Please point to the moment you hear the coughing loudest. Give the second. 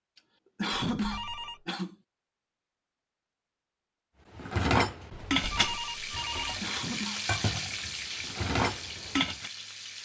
1 s.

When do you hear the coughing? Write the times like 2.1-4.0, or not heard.
0.6-1.9, 6.6-7.2.